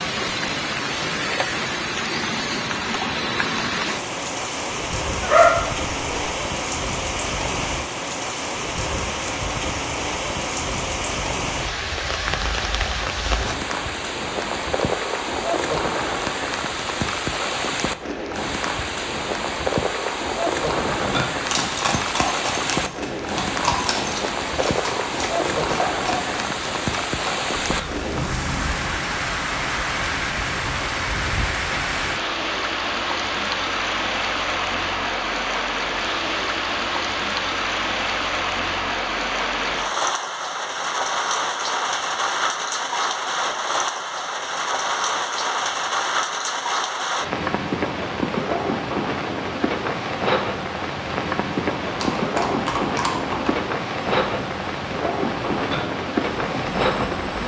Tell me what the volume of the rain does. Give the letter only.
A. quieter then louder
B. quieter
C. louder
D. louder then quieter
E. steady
E.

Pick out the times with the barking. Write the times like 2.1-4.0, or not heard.
5.2-6.2.